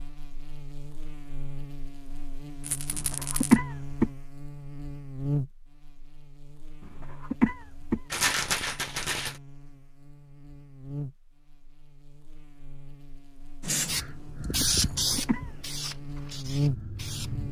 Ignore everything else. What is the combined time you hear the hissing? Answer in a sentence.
The hissing can be heard for 4 seconds in total.